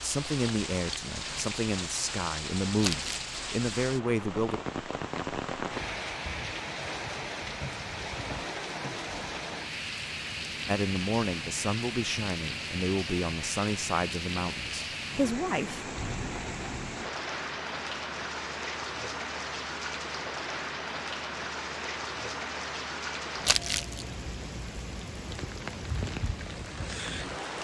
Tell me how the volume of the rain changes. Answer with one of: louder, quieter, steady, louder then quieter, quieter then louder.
steady.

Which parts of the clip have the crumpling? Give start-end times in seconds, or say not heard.
2.8-3.3, 23.4-24.1.